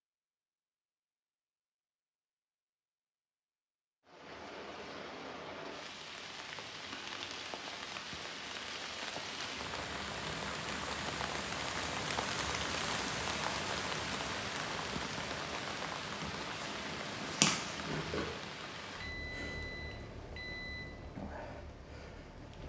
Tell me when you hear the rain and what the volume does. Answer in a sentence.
You can hear the rain from 4.0 to 22.6 s, getting louder then quieter.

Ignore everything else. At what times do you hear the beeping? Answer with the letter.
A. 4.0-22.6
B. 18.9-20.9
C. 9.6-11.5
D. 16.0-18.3
B.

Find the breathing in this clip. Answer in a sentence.
The breathing can't be heard in this clip.